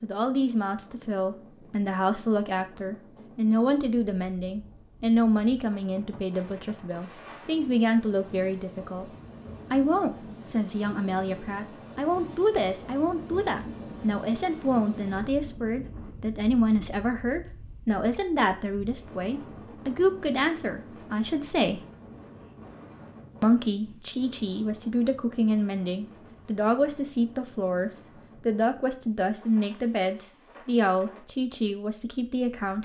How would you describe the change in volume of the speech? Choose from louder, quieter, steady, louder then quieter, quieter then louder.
steady.